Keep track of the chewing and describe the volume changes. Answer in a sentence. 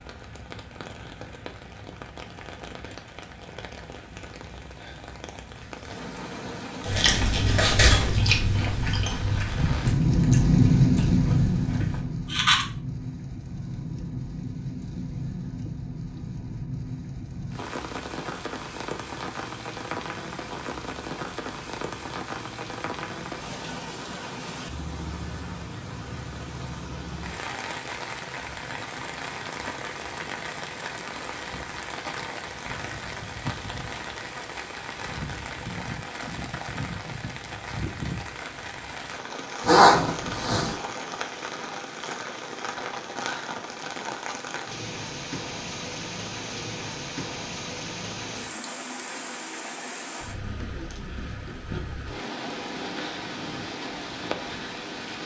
The volume of the chewing goes down.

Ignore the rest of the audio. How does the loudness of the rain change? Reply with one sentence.
The loudness of the rain goes down.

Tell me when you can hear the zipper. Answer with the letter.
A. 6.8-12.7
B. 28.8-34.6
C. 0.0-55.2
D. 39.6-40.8
D.